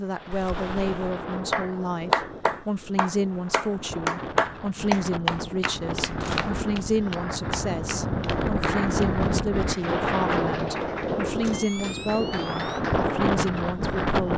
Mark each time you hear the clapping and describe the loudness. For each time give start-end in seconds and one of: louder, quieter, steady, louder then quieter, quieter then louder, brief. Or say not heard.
1.5-13.2 quieter.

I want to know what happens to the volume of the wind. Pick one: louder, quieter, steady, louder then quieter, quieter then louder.
louder.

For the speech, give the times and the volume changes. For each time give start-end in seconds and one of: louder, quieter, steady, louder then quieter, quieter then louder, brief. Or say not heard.
0.0-14.3 steady.